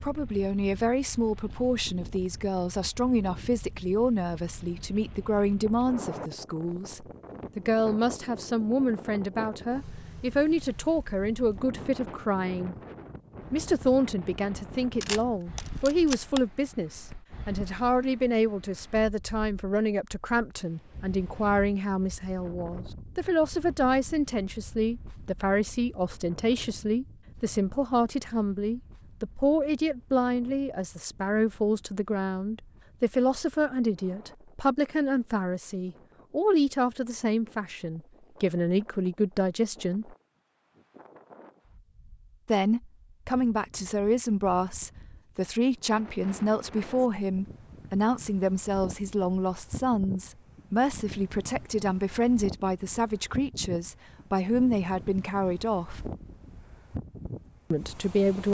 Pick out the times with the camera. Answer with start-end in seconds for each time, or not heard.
15.0-16.4.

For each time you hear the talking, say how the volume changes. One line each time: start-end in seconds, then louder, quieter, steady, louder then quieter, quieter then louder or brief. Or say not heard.
0.0-12.8 steady
13.5-40.1 steady
42.5-56.0 steady
57.7-58.4 brief.